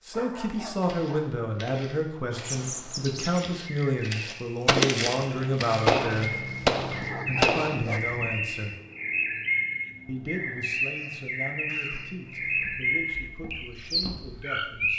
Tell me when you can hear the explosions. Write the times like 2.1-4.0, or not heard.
4.7-7.8.